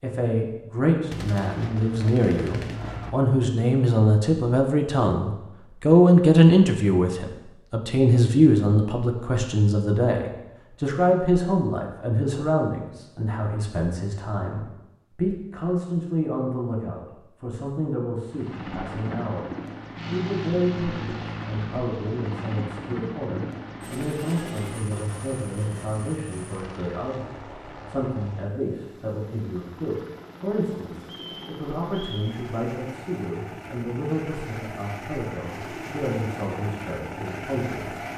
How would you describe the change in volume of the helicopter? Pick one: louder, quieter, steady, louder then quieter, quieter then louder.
quieter then louder.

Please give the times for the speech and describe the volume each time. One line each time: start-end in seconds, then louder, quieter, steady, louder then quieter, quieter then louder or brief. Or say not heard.
0.0-38.0 quieter.